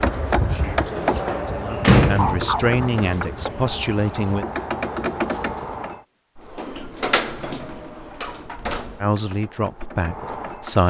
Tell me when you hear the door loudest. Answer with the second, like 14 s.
2 s.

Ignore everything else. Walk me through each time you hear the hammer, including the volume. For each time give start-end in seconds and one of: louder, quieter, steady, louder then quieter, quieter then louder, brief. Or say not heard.
0.0-6.0 quieter then louder
8.9-10.8 brief.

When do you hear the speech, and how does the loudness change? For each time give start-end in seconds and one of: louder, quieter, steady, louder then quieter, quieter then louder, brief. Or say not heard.
0.3-4.5 louder
9.0-10.8 brief.